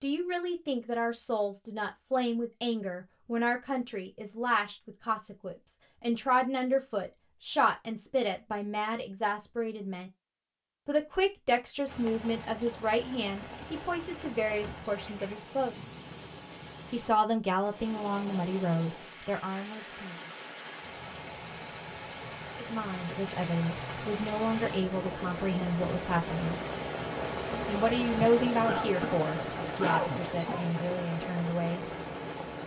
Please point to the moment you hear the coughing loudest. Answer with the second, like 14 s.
30 s.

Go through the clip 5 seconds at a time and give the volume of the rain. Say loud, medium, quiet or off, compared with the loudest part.
off, off, medium, medium, medium, loud, loud.